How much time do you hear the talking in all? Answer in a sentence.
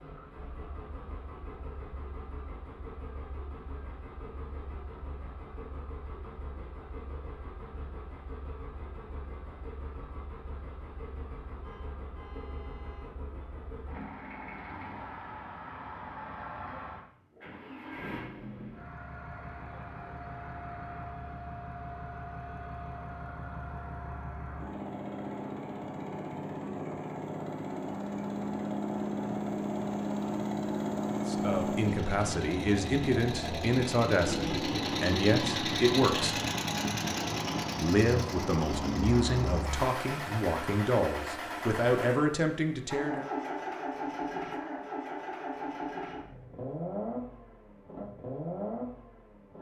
The talking can be heard for 11 seconds in total.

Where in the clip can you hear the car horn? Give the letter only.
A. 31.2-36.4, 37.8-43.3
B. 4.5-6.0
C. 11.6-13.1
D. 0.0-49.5
C.